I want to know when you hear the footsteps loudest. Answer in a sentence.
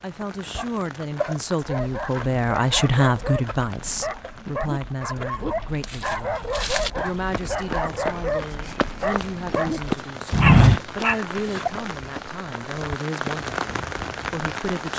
The loudest moment of the footsteps is at 11 seconds.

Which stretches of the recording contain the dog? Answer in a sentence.
The dog can be heard from 1.6 to 11.2 s.